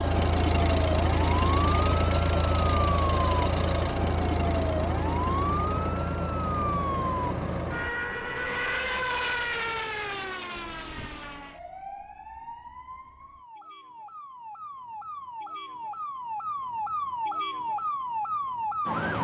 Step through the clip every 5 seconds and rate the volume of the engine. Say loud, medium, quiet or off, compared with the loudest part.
loud, medium, off, off.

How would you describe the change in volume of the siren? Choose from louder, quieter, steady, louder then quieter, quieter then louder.
quieter then louder.